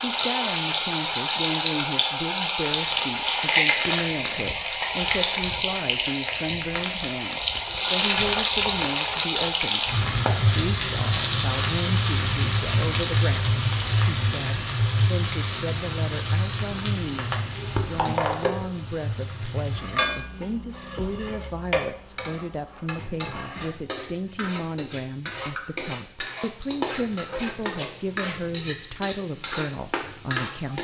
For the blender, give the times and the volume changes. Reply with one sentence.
You can't hear the blender here.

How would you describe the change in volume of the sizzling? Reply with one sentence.
The volume of the sizzling goes down.